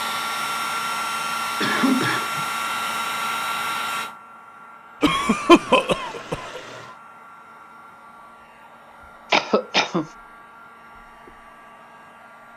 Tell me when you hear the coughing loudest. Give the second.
6 s.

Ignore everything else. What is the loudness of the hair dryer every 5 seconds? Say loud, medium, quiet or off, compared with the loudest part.
loud, quiet, quiet.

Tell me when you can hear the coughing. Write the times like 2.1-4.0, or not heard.
1.6-2.5, 5.0-6.6, 9.3-10.1.